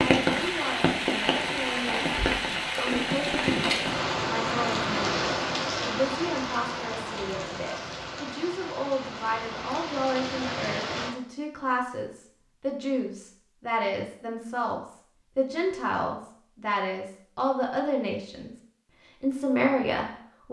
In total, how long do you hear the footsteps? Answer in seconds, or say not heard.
not heard.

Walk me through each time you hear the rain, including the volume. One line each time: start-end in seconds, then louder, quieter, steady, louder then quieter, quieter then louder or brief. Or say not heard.
0.0-11.2 quieter.